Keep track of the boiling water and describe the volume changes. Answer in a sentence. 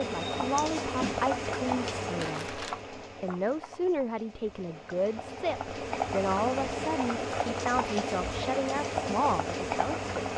The loudness of the boiling water goes down, then up.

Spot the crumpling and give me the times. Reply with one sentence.
You can hear the crumpling from 2.1 to 2.8 s.